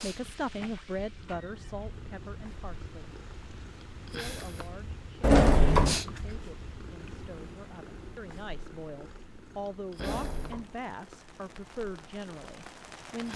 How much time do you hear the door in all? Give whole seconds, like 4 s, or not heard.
3 s.